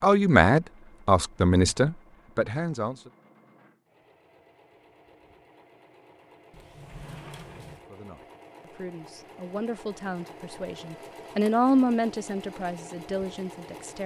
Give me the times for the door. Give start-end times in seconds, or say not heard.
6.5-7.8.